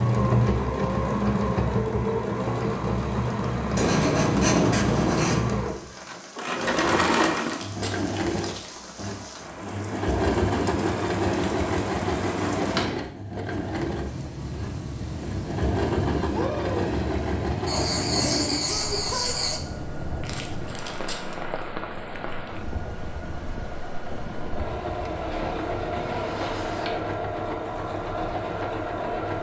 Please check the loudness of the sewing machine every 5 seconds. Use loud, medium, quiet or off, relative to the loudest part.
loud, loud, loud, medium, quiet, medium.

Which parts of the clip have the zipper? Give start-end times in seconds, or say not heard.
not heard.